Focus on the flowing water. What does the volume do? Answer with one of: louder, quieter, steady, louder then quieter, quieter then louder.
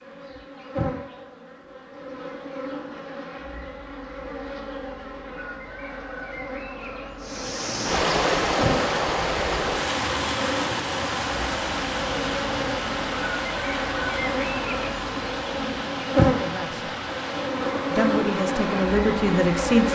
quieter.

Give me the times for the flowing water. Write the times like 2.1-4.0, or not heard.
7.2-19.9.